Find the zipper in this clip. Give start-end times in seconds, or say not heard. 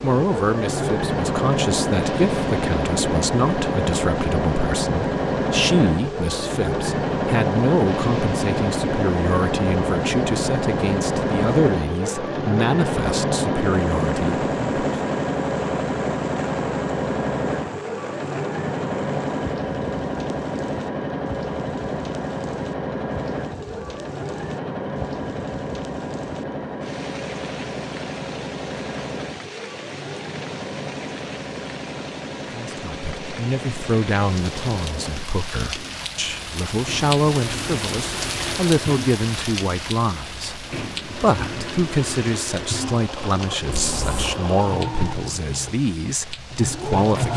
43.7-44.4.